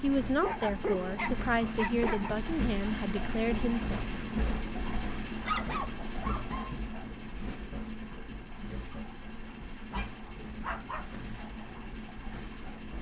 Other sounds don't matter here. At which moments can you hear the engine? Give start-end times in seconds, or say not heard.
0.0-12.9.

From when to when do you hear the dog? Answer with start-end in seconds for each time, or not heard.
0.4-2.4, 5.2-6.8, 9.9-11.2.